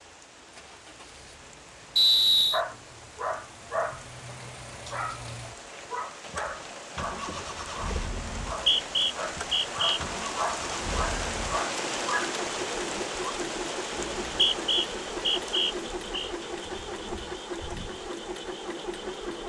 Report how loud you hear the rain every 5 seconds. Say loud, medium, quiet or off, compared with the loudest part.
quiet, medium, loud, medium.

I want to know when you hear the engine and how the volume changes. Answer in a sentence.
You can hear the engine from 0.1 to 19.4 s, getting louder.